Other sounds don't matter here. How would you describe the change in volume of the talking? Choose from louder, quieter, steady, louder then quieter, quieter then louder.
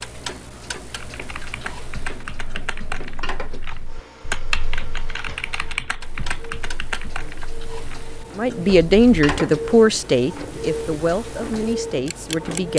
quieter.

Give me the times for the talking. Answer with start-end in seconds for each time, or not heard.
8.3-12.7.